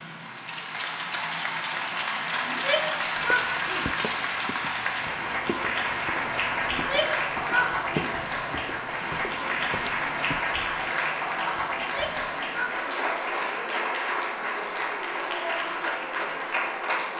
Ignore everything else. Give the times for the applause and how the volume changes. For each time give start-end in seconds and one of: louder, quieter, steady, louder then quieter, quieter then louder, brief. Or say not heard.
0.0-17.1 steady.